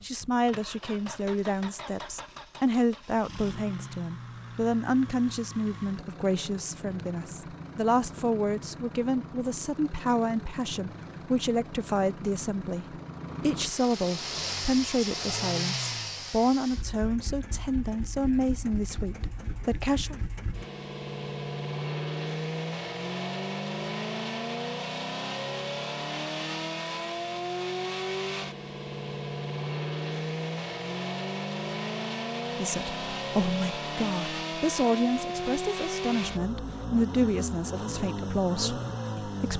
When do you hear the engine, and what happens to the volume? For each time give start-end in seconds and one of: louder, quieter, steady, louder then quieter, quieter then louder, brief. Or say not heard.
0.0-39.5 louder.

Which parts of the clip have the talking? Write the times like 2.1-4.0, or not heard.
0.0-20.1, 32.5-39.5.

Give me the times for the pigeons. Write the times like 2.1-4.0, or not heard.
not heard.